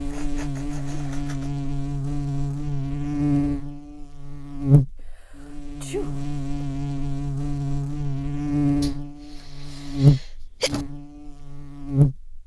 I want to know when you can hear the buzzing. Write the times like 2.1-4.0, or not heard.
0.0-12.3.